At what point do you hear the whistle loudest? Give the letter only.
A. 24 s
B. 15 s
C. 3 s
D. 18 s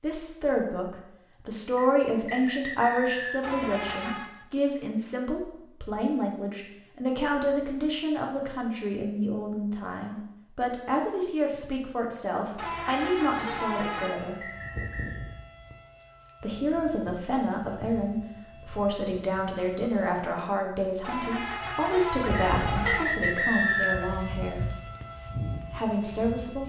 A.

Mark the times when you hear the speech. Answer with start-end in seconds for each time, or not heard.
0.0-14.4, 16.4-24.6, 25.7-26.6.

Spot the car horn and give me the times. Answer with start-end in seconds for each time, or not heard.
3.4-4.3, 12.6-14.2, 21.0-23.1.